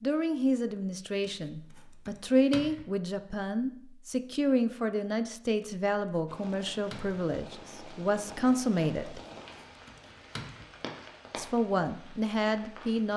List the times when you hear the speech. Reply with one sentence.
You can hear the speech from 0.0 to 9.2 s and from 11.3 to 13.1 s.